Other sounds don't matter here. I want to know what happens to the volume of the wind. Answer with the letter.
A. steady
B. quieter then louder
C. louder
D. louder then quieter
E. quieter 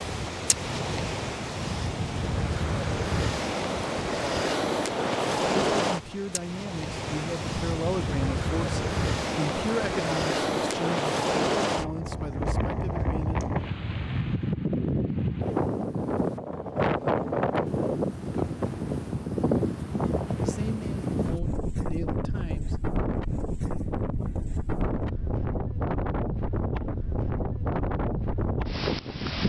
A.